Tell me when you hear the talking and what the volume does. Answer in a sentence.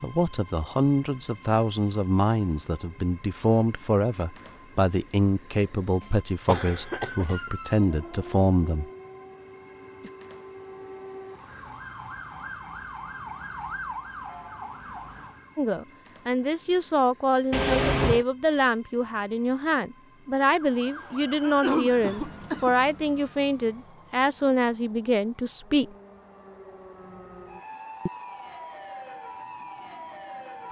The talking can be heard from 0.0 to 8.8 s, at a steady volume; and from 15.6 to 25.9 s, at a steady volume.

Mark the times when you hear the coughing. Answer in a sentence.
The coughing can be heard from 6.0 to 7.5 s, from 17.5 to 18.2 s and from 21.4 to 22.8 s.